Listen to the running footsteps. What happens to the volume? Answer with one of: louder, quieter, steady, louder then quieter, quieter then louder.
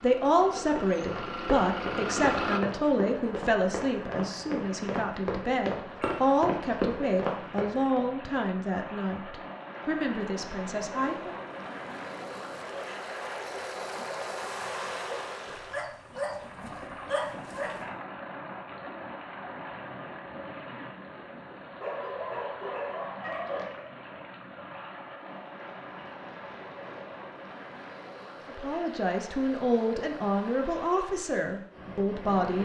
louder.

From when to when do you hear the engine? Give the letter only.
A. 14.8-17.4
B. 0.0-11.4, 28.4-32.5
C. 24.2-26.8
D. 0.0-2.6
D.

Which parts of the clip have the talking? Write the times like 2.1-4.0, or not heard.
0.0-11.4, 28.4-32.5.